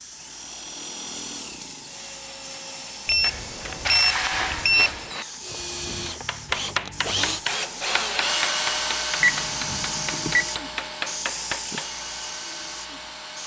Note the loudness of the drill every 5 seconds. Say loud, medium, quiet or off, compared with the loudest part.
medium, loud, medium.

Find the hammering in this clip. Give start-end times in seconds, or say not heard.
6.0-11.9.